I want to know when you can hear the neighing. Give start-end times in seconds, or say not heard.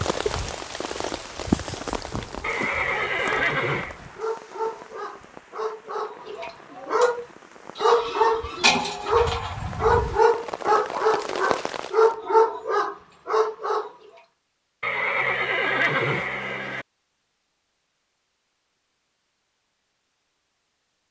2.4-4.0, 14.8-16.9.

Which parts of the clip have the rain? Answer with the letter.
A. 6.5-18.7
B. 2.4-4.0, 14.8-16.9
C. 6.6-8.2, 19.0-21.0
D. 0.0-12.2
D.